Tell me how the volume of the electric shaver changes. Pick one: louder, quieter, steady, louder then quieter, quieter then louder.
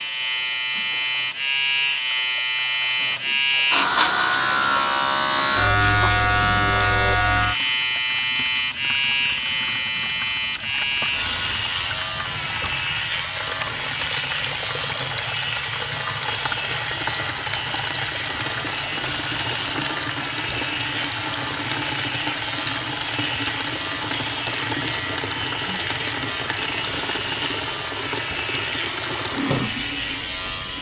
quieter.